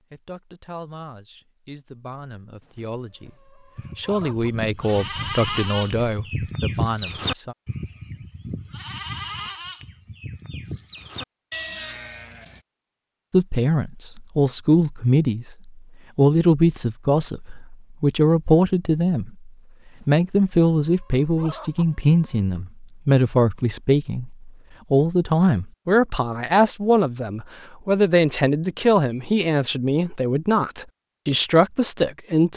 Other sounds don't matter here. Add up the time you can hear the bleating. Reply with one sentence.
You can hear the bleating for 9 seconds altogether.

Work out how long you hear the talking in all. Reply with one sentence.
You can hear the talking for 27 seconds altogether.